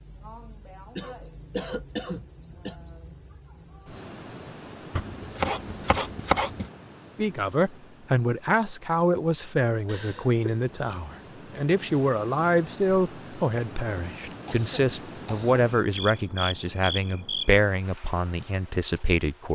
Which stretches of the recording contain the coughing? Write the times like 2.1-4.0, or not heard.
0.9-2.8, 9.8-10.3, 14.4-15.7.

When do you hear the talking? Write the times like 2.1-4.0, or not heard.
7.2-19.5.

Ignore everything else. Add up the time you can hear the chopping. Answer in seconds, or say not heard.
2 s.